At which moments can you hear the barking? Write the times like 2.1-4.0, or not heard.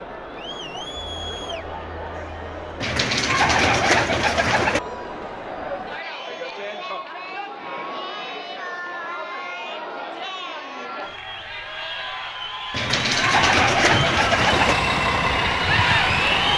not heard.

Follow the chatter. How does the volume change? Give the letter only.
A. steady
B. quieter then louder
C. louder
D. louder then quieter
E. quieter
C.